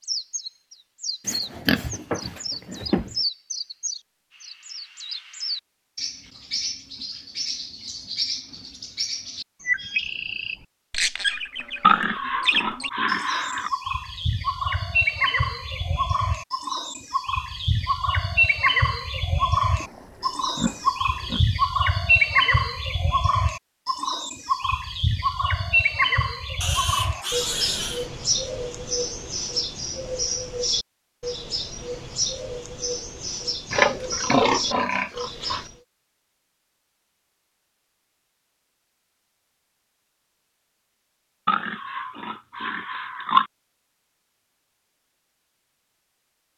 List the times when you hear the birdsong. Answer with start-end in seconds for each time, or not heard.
0.0-35.8.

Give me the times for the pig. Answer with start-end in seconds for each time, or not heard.
1.2-3.0, 11.8-13.7, 19.8-21.4, 26.6-28.1, 33.7-35.6, 41.5-43.5.